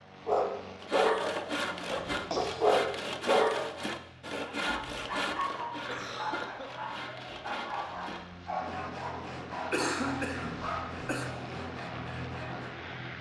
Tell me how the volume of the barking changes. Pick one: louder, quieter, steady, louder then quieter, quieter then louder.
quieter.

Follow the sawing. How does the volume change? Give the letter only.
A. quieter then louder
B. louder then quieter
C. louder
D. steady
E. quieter
E.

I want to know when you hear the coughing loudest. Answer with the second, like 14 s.
10 s.